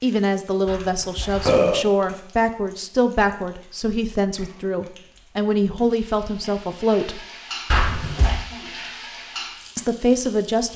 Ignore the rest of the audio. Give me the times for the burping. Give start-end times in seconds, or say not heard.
0.7-1.8, 7.7-8.3.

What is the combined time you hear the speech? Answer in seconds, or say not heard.
8 s.